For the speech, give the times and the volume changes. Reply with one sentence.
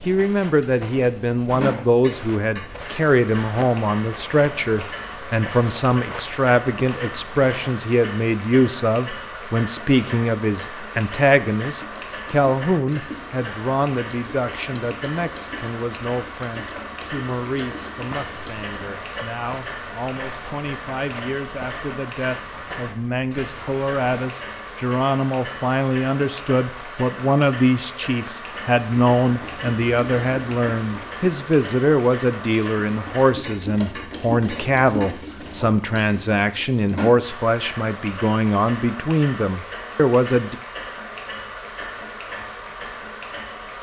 The speech can be heard from 0.1 to 40.5 s, getting quieter then louder.